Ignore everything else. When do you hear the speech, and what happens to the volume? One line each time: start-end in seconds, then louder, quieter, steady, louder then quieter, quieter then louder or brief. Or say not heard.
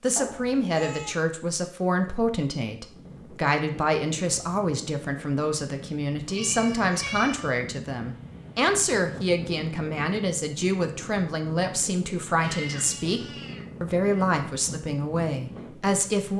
0.0-16.3 steady.